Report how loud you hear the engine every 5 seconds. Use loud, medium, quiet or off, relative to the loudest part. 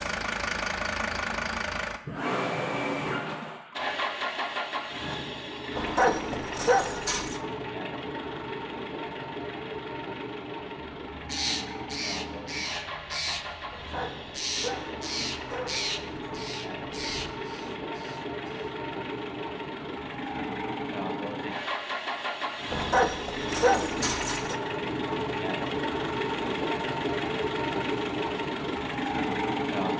loud, medium, medium, medium, loud, loud.